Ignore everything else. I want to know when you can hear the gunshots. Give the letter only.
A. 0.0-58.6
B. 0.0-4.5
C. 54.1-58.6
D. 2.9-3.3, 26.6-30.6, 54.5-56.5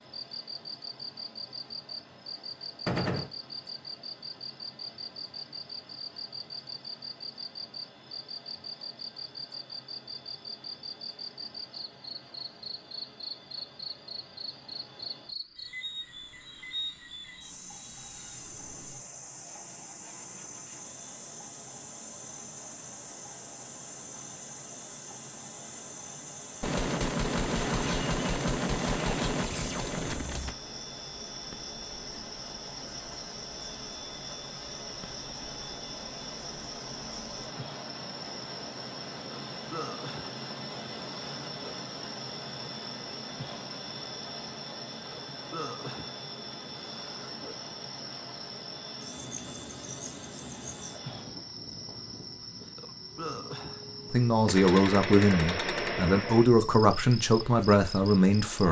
D.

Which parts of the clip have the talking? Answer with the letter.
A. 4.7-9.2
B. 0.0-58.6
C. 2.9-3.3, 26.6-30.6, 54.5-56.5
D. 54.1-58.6
D.